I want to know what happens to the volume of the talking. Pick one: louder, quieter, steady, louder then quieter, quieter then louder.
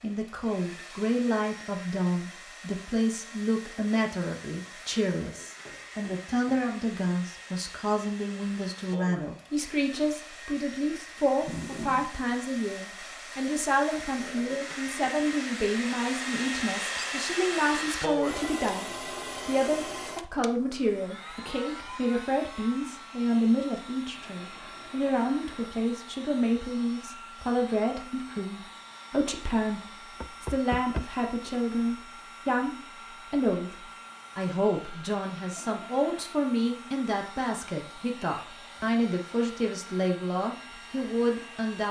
steady.